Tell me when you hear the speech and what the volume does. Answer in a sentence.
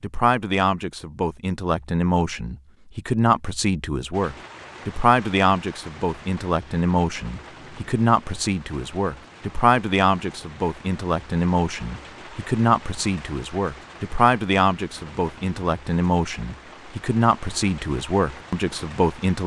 You can hear the speech from 0.0 to 19.4 s, at a steady volume.